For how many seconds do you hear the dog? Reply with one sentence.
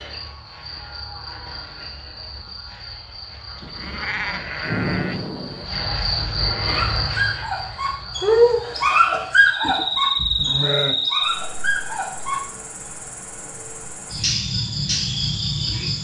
The dog can be heard for 6 seconds in total.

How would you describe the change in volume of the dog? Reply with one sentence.
The loudness of the dog goes up, then down.